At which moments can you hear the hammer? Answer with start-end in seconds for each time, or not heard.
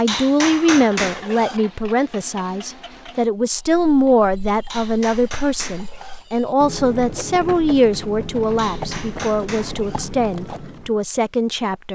0.1-1.6, 4.7-6.2, 8.6-10.1.